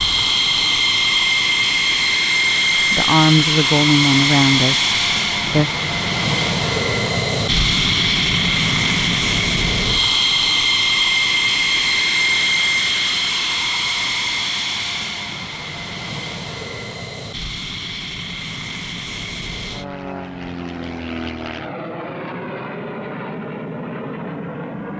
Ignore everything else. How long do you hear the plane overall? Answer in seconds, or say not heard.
25 s.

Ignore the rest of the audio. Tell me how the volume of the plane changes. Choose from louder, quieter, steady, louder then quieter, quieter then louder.
quieter.